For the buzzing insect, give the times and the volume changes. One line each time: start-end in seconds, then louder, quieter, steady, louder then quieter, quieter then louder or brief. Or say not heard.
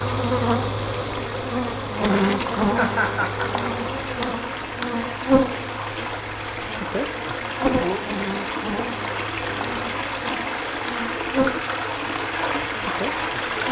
0.0-13.6 quieter.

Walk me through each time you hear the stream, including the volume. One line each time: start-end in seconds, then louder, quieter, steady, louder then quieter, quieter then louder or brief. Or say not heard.
0.0-13.6 louder.